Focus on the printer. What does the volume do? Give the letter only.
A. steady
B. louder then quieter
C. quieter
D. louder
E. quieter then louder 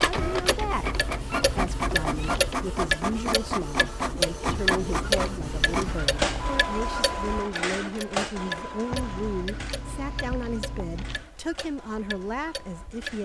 C.